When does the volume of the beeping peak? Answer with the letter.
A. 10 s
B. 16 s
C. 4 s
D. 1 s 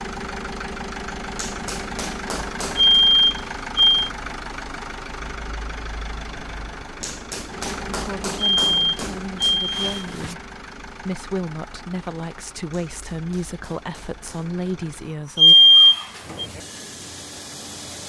B.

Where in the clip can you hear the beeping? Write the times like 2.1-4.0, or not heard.
2.8-4.1, 8.3-10.3, 15.3-16.4.